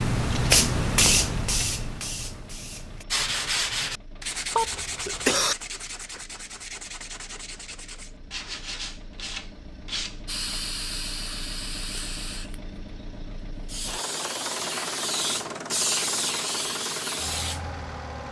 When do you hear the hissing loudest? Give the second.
1 s.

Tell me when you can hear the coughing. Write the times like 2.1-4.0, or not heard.
4.5-5.5.